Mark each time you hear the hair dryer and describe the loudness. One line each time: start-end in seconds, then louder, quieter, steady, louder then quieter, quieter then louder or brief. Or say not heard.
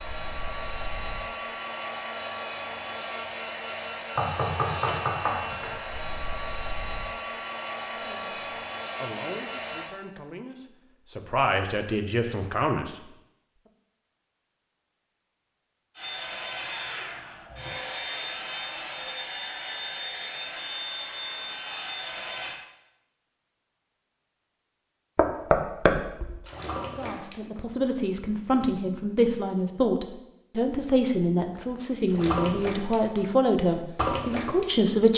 0.0-9.9 steady
15.9-22.6 steady.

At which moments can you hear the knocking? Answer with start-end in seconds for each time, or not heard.
4.2-5.8, 25.1-26.4.